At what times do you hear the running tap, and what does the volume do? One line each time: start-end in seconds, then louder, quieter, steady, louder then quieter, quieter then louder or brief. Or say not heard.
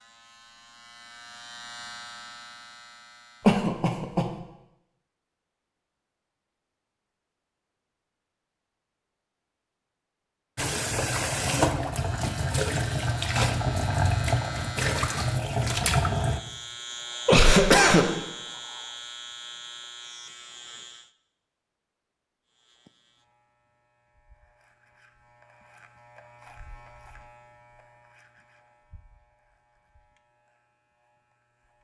10.6-16.4 steady.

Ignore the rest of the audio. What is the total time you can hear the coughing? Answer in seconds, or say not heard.
2 s.